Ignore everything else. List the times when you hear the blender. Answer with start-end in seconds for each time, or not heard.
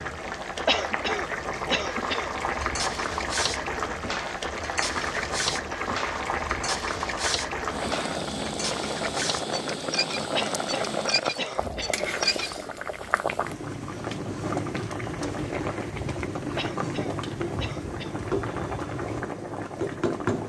not heard.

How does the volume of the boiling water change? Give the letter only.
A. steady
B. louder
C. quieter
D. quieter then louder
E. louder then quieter
A.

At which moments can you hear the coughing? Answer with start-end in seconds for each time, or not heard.
0.7-2.3, 10.3-12.0, 16.6-18.2.